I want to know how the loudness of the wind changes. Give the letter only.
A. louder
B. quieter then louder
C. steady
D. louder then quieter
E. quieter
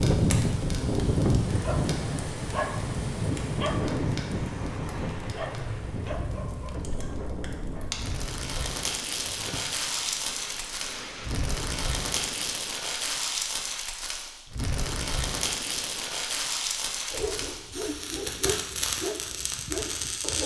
E.